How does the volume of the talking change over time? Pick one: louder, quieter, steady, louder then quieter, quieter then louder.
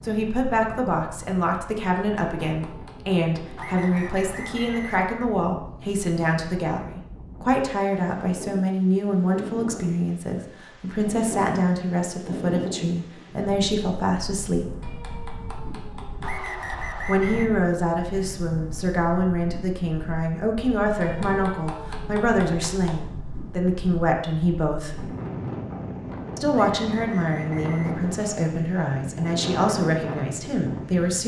steady.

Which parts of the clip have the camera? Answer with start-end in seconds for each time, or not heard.
not heard.